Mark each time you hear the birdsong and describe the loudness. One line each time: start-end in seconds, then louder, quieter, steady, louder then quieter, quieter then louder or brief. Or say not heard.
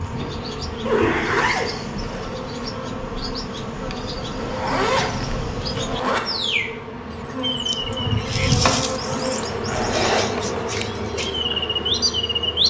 0.0-12.6 louder.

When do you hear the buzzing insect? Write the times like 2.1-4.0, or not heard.
0.0-12.6.